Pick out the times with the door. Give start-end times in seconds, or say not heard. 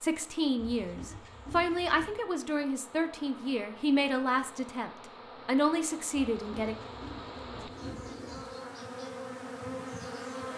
not heard.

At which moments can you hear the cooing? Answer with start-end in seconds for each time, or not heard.
6.6-8.5.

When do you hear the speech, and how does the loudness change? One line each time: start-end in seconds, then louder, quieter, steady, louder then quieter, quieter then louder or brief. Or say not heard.
0.0-6.8 steady.